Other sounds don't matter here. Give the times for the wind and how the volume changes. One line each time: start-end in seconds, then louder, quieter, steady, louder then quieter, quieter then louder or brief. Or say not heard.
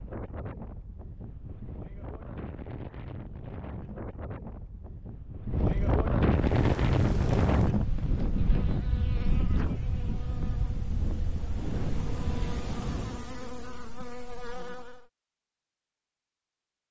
0.0-13.2 louder then quieter.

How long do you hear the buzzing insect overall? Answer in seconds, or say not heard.
9 s.